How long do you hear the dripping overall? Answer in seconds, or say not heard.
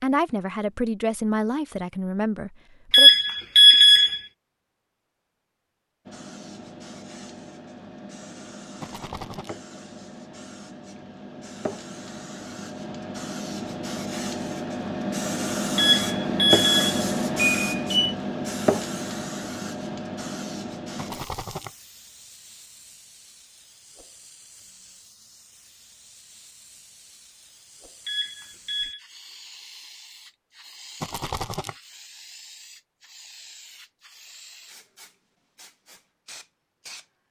not heard.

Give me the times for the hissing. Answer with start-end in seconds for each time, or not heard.
6.0-37.0.